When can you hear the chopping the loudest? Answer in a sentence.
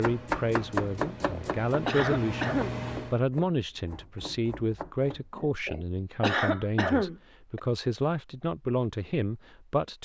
The volume of the chopping peaks at 1 second.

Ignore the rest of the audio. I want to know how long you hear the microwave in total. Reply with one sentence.
The microwave can be heard for 3 seconds in total.